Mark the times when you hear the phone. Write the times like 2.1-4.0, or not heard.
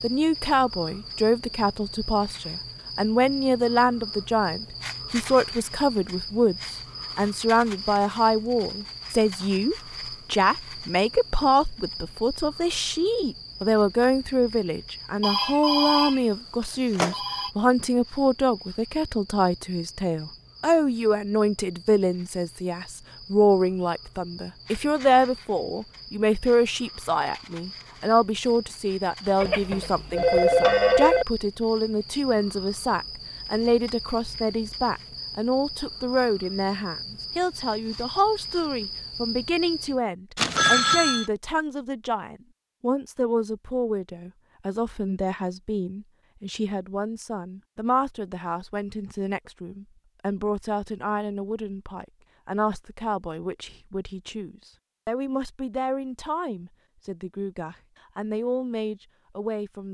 15.2-17.5, 29.4-31.2, 40.4-41.3.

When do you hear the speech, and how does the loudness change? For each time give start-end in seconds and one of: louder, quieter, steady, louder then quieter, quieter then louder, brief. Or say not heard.
0.0-59.8 quieter.